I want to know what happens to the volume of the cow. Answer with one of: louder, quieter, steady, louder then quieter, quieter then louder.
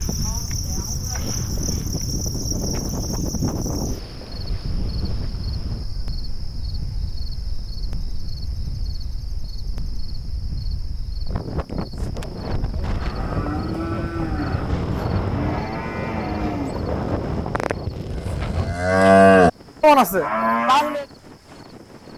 louder.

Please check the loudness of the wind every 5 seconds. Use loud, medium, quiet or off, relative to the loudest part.
loud, medium, loud, loud, quiet.